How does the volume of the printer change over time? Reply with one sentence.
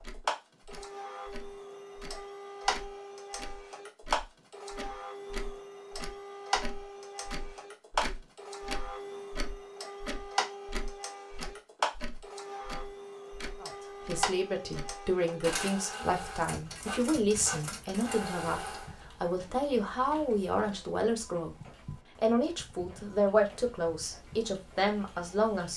The loudness of the printer goes down.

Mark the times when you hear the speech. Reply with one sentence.
The speech can be heard from 13.6 to 25.7 s.